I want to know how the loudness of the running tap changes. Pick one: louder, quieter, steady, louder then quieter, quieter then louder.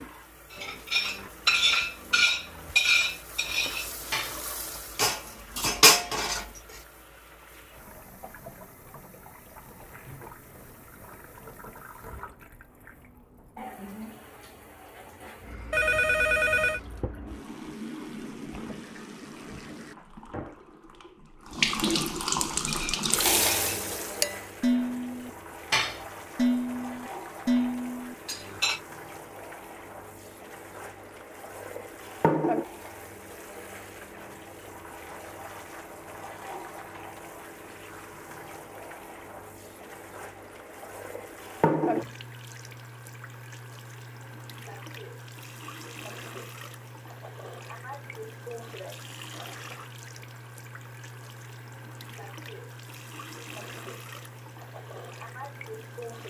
louder then quieter.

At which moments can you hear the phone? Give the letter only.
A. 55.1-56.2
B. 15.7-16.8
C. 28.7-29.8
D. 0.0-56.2
B.